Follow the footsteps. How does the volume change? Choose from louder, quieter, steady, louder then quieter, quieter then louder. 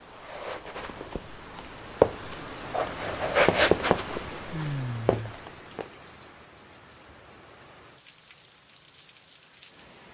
louder then quieter.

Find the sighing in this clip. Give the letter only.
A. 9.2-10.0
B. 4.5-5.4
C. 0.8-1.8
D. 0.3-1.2
B.